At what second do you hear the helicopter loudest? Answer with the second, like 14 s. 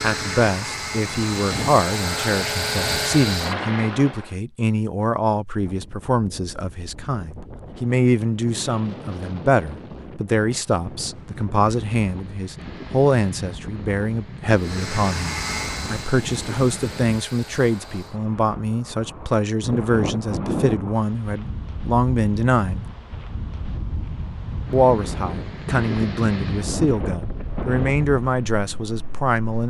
3 s.